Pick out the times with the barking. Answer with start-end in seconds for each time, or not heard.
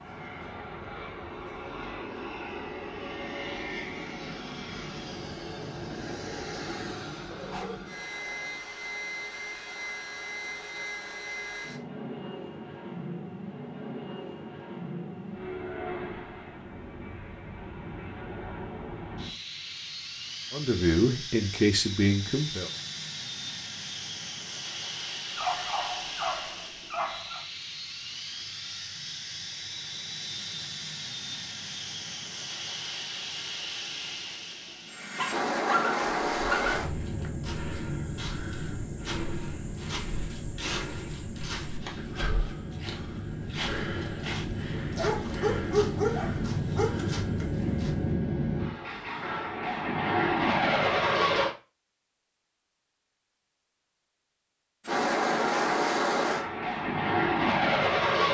7.3-8.6, 25.4-27.4, 35.1-37.3, 45.0-46.9.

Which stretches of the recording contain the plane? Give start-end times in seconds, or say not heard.
0.0-51.5, 54.9-58.2.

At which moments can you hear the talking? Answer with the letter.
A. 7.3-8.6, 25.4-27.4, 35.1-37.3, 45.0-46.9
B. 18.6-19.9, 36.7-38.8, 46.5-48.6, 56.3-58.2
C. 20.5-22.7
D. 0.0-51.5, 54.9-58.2
C.